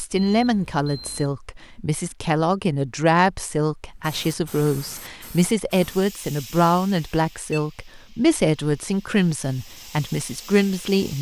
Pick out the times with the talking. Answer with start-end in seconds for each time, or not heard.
0.0-11.1.